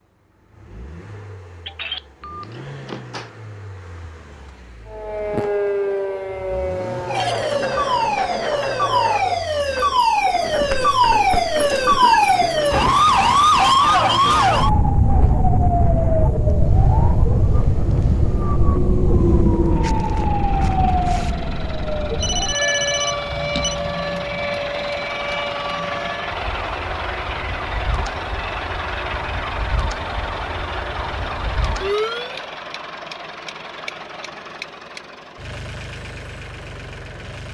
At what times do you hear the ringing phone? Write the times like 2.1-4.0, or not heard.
1.6-3.3, 22.2-23.8.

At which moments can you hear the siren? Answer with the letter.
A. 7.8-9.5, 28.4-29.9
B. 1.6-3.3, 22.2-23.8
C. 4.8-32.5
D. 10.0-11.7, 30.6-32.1
C.